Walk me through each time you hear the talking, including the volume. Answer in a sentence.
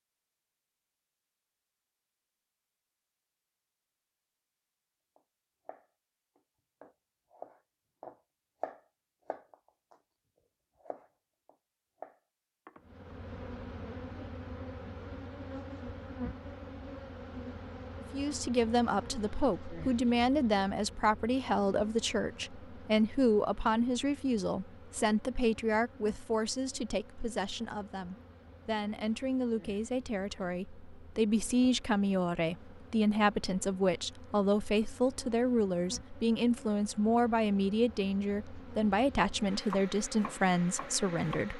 You can hear the talking from 18.1 to 41.5 s, at a steady volume.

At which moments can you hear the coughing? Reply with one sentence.
The coughing can't be heard in this clip.